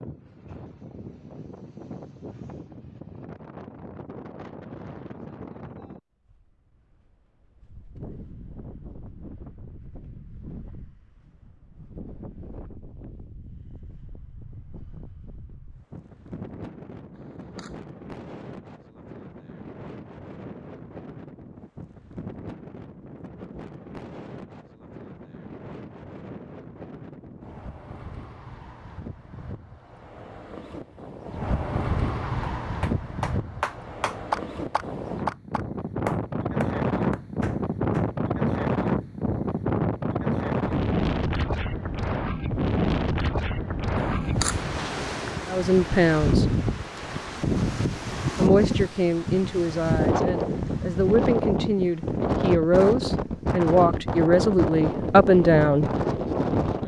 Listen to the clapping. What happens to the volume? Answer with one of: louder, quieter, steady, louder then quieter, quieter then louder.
quieter.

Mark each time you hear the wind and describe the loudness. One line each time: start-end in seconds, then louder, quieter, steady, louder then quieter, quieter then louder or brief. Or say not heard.
0.0-56.8 louder.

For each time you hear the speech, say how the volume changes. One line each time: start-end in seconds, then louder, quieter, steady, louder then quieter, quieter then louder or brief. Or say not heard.
45.5-46.5 brief
48.4-55.9 louder.